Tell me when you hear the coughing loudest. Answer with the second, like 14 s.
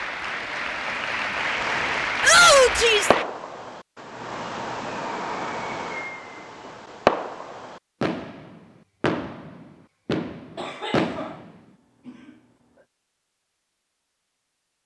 11 s.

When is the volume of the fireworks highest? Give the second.
7 s.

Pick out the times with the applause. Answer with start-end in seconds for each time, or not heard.
0.0-3.2.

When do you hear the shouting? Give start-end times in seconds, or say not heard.
2.2-3.1.